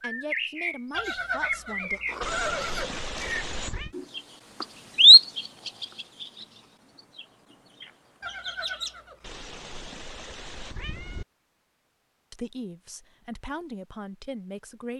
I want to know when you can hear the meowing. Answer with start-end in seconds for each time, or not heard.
2.2-4.0, 9.2-11.2.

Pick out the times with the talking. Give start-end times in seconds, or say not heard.
0.0-2.0, 12.3-14.9.